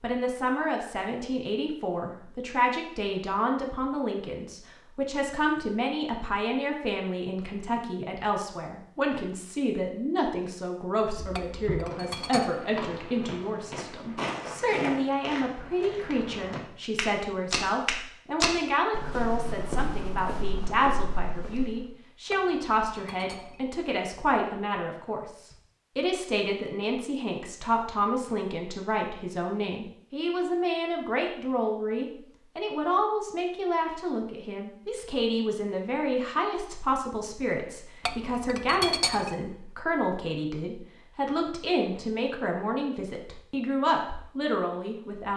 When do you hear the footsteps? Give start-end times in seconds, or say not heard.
11.0-21.9.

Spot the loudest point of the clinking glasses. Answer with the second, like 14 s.
39 s.